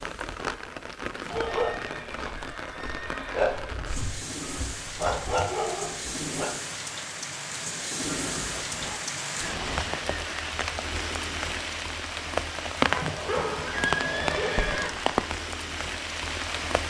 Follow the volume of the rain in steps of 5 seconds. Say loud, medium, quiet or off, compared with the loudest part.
medium, loud, loud, loud.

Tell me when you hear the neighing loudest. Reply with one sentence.
The loudest moment of the neighing is at 14 seconds.